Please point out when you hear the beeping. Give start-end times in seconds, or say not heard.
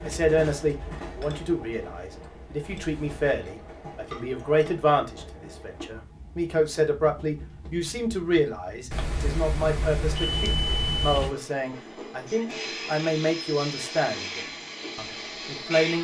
2.6-3.2, 8.9-11.3.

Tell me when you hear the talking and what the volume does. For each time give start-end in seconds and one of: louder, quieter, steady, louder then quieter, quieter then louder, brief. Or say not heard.
0.0-15.9 steady.